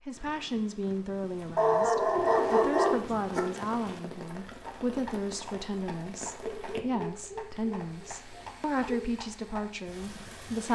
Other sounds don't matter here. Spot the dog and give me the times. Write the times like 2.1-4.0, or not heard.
1.6-3.4, 6.4-9.1.